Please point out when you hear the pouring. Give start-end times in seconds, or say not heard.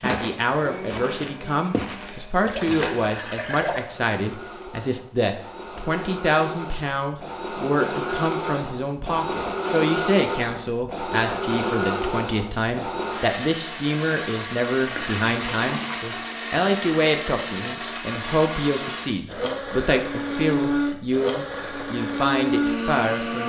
2.4-3.9, 14.8-16.0.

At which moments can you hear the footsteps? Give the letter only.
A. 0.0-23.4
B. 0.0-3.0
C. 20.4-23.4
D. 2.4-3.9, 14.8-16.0
B.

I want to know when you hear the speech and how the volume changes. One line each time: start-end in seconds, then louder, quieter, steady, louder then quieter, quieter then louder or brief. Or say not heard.
0.0-23.4 steady.